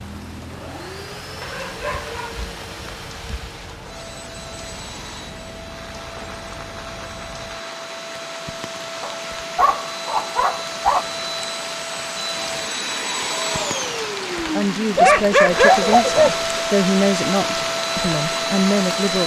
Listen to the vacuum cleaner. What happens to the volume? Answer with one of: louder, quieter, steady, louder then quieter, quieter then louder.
louder.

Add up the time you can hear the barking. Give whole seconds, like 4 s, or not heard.
6 s.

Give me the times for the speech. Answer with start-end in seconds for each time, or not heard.
14.5-19.2.